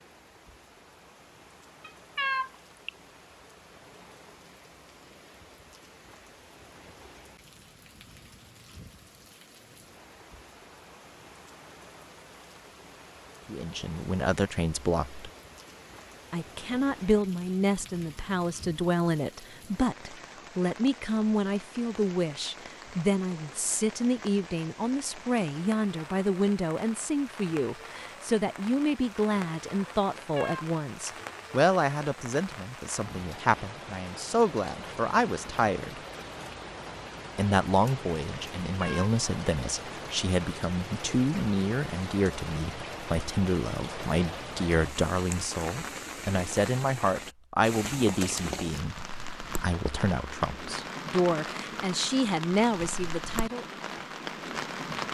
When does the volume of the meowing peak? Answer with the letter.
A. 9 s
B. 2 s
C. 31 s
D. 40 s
B.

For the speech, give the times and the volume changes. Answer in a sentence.
You can hear the speech briefly from 13.4 to 15.2 s; from 16.3 to 36.0 s, at a steady volume; and from 37.4 to 53.8 s, at a steady volume.